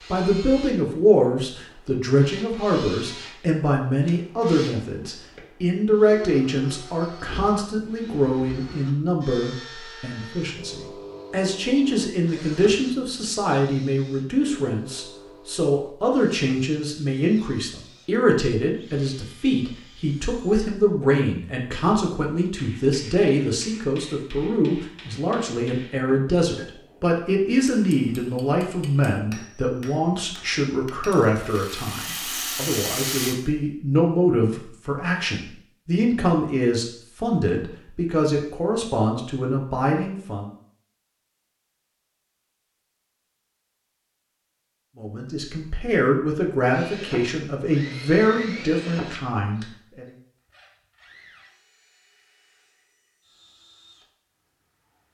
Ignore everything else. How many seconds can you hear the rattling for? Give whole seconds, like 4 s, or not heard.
2 s.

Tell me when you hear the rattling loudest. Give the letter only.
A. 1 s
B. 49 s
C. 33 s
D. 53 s
C.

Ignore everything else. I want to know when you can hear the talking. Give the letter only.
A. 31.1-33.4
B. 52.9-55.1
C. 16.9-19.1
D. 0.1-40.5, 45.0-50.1
D.